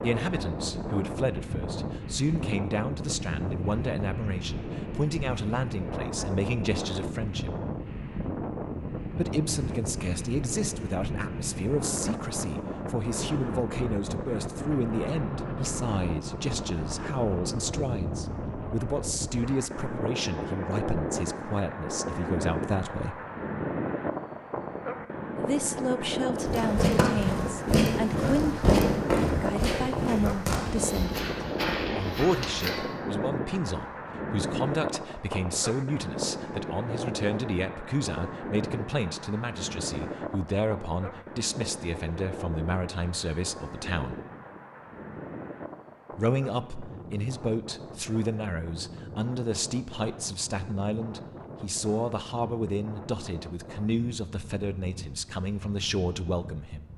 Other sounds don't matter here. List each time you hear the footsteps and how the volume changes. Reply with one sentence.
You can hear the footsteps from 26.4 to 32.8 s, getting quieter.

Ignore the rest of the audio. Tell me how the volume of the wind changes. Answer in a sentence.
The volume of the wind goes down.